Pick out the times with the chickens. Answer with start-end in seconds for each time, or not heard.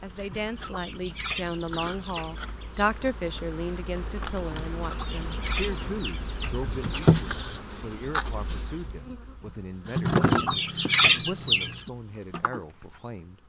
0.3-2.4, 4.8-7.0, 10.1-11.9.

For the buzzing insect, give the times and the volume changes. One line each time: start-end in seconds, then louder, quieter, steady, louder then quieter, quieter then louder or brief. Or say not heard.
0.0-13.4 louder then quieter.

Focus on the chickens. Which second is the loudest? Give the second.
11 s.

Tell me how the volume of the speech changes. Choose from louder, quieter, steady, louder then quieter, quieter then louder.
quieter.